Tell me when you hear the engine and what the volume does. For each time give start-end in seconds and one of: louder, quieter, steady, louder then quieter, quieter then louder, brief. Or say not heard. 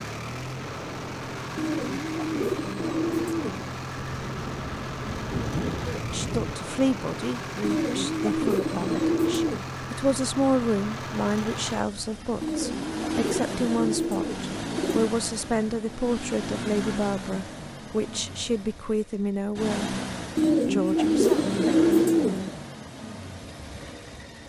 0.0-24.4 steady.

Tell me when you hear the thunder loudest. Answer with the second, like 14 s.
6 s.